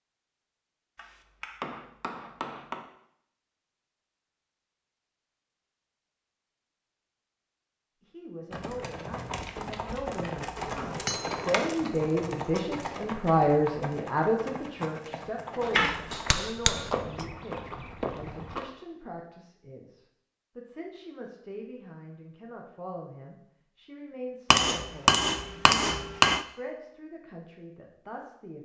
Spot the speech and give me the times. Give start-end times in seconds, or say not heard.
8.0-28.6.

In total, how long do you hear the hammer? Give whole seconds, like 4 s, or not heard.
7 s.